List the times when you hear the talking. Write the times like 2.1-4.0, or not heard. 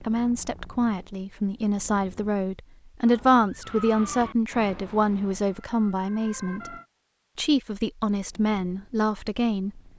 0.0-6.8, 7.3-9.8.